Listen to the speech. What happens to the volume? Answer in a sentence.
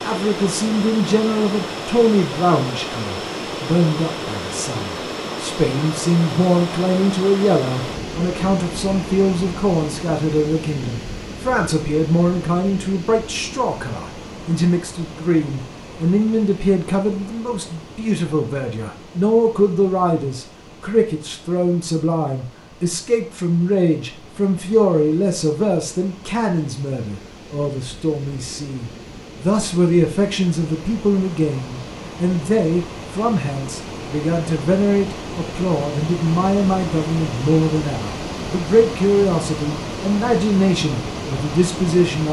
The volume of the speech stays about the same.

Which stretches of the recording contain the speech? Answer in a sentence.
The speech can be heard from 0.0 to 42.2 s.